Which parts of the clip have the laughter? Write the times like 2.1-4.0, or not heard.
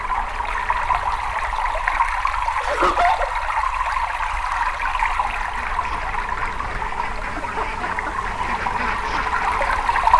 2.6-3.3, 7.3-8.2.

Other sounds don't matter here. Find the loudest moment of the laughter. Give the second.
3 s.